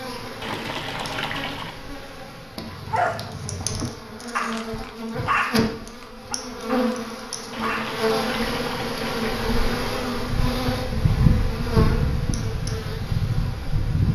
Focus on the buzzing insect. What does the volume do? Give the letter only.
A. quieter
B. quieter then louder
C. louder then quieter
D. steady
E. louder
E.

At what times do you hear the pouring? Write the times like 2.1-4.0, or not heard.
0.4-1.8, 7.5-9.5.